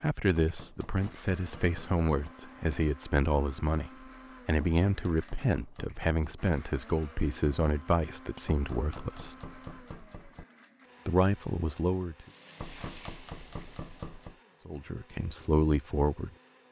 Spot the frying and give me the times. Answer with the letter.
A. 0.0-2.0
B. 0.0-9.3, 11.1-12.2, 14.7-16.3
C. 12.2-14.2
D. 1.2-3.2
C.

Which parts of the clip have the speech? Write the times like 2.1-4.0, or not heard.
0.0-9.3, 11.1-12.2, 14.7-16.3.